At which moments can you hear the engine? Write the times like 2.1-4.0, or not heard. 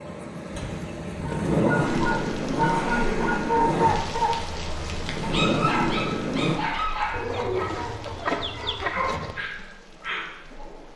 0.0-6.6.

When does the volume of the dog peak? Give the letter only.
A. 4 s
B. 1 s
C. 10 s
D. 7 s
A.